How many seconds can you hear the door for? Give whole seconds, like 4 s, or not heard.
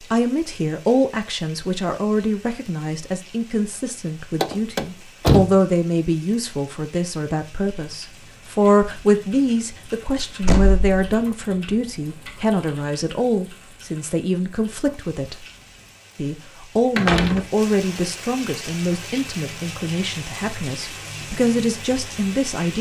2 s.